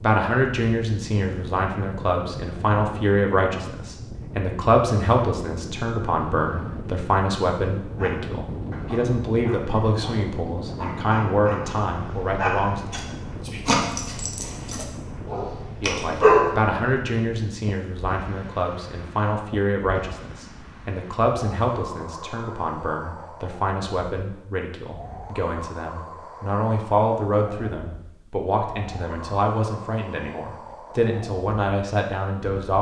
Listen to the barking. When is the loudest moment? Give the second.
16 s.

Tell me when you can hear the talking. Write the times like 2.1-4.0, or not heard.
0.0-12.9, 15.8-32.7.